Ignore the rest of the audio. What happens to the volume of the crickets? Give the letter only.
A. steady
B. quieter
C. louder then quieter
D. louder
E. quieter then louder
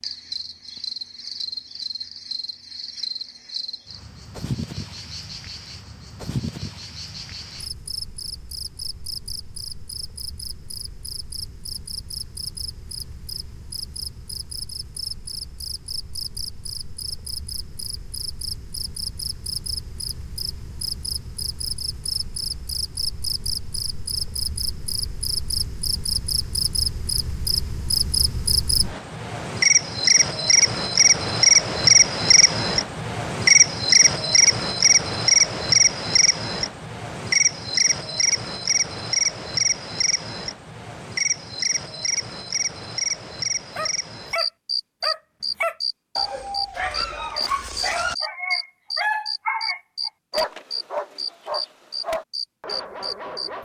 C.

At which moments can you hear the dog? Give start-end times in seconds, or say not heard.
43.8-53.5.